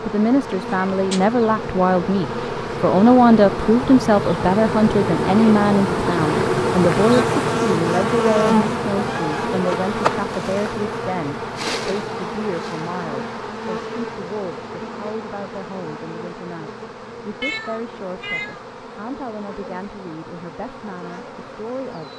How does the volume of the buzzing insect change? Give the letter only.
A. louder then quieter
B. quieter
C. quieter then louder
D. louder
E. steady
A.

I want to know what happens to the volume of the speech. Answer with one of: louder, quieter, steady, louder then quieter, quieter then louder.
quieter.